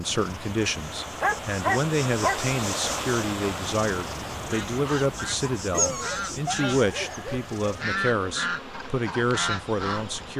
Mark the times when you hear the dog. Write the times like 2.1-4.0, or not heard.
1.2-2.4, 5.7-7.5.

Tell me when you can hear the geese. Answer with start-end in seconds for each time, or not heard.
4.5-10.3.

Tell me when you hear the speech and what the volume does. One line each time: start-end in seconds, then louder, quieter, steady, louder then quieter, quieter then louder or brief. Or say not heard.
0.0-10.3 steady.